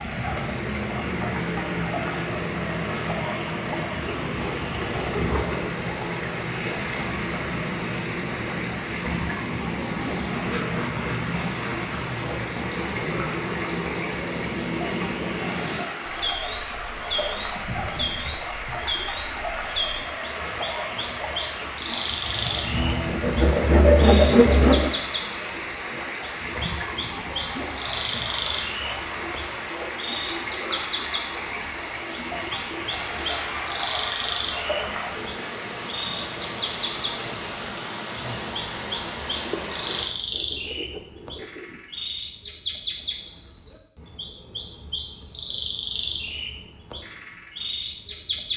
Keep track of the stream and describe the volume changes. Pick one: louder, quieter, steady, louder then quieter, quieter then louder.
steady.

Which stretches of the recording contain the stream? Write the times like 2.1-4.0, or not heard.
0.0-40.0.